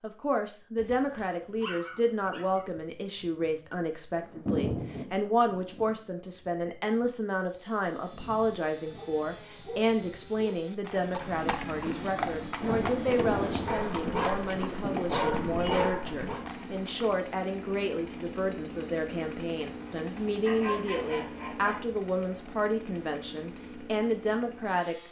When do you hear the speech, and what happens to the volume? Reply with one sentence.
The speech can be heard from 0.0 to 24.9 s, at a steady volume.